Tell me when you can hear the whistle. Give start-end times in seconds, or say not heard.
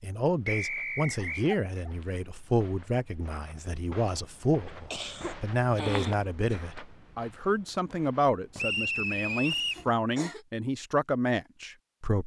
0.5-1.4, 8.6-9.8.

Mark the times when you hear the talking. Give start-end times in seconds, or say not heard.
0.0-12.2.